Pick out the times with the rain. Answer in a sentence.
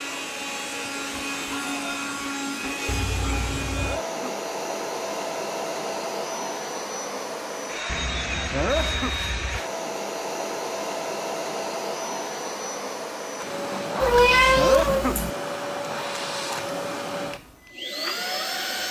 You can't hear the rain here.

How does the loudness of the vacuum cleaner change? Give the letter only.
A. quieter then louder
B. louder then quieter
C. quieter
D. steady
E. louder
D.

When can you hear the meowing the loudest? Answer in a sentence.
The loudest moment of the meowing is at 14 seconds.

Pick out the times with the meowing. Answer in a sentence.
The meowing can be heard from 2.9 to 4.0 s, from 7.8 to 9.6 s and from 14.0 to 15.3 s.